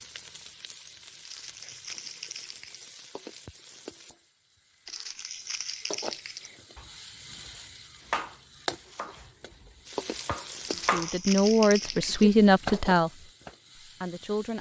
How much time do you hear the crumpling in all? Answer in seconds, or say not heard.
5 s.